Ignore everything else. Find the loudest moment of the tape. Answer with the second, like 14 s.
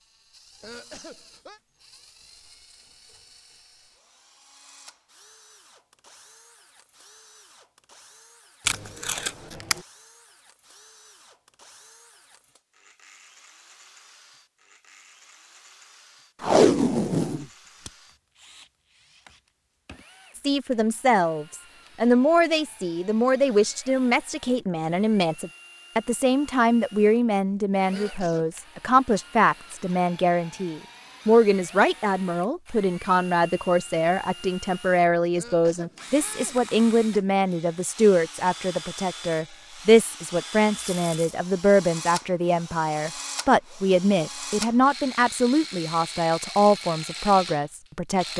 17 s.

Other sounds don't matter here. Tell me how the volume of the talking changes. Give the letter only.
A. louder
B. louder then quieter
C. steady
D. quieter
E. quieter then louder
C.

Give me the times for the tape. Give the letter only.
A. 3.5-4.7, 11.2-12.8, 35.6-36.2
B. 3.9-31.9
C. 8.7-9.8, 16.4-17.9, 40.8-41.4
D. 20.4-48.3
C.